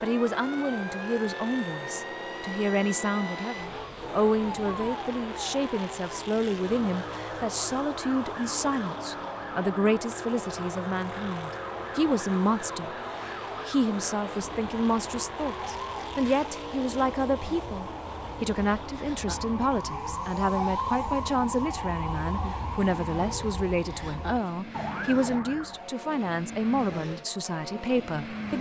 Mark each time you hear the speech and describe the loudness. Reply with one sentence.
You can hear the speech from 0.0 to 28.5 s, at a steady volume.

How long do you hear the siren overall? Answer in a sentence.
You can hear the siren for 26 seconds altogether.